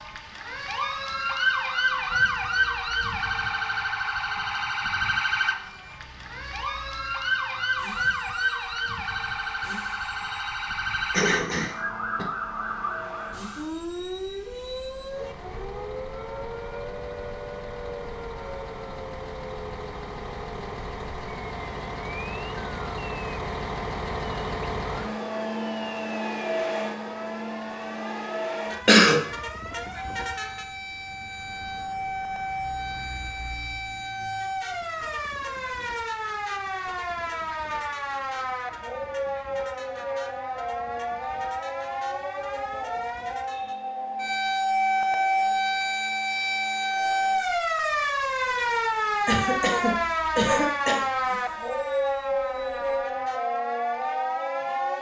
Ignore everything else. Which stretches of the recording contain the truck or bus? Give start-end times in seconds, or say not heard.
0.0-53.4.